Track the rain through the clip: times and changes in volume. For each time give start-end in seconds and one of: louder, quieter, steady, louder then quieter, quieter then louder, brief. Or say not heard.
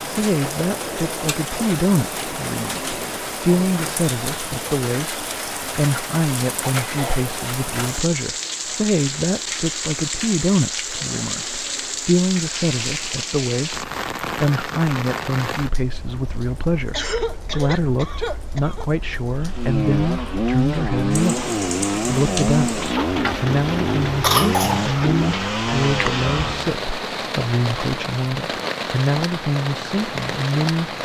0.0-30.9 steady.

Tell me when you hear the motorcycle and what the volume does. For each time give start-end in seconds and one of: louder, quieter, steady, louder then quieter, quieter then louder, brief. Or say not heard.
19.4-26.8 steady.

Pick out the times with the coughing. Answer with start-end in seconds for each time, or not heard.
6.8-7.2, 16.9-18.9, 24.2-24.9.